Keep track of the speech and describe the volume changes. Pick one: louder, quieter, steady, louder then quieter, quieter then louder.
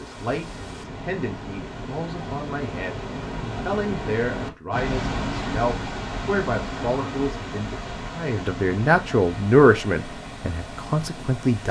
louder.